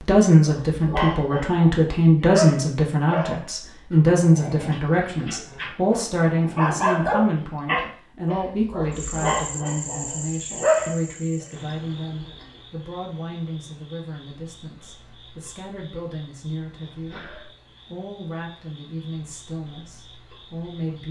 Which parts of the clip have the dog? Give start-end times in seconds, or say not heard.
0.5-10.9.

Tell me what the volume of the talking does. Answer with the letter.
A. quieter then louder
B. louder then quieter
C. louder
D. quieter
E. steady
D.